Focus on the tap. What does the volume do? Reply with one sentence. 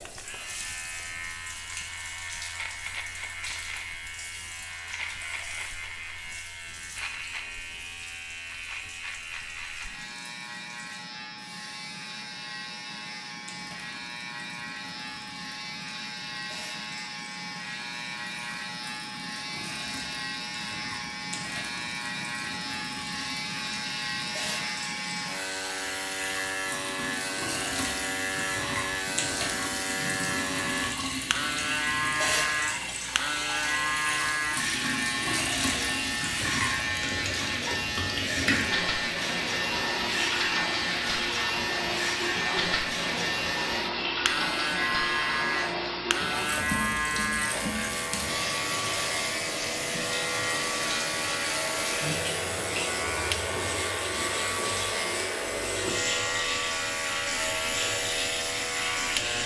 The volume of the tap goes up.